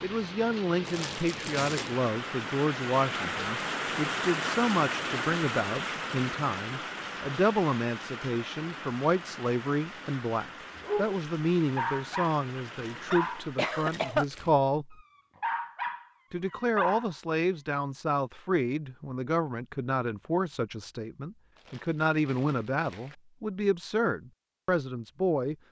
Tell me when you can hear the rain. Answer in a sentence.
You can hear the rain from 0.0 to 13.8 s.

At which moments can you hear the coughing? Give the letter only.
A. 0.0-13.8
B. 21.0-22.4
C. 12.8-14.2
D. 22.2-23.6
C.